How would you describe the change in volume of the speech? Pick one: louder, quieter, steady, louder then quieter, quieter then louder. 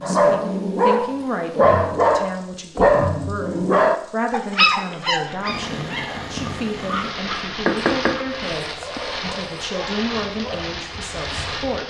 steady.